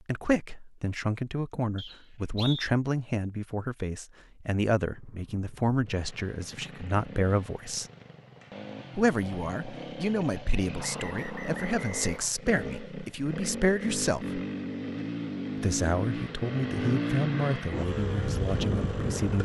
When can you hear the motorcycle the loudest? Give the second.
17 s.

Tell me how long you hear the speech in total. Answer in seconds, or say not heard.
17 s.